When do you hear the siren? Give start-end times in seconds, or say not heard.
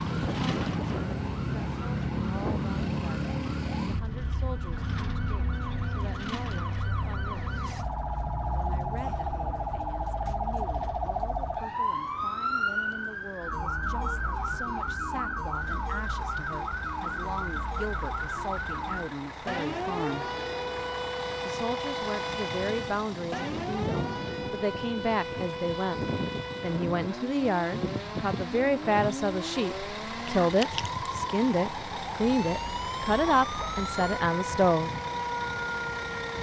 0.0-36.3.